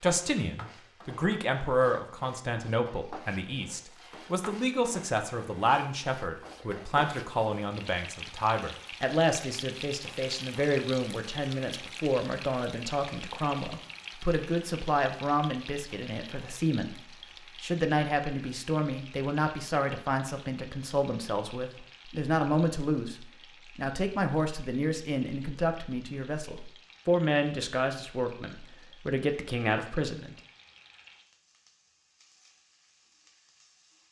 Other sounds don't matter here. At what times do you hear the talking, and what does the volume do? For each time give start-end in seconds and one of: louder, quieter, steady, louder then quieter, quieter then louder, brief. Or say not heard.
0.0-30.4 steady.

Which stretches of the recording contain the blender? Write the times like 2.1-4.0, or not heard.
not heard.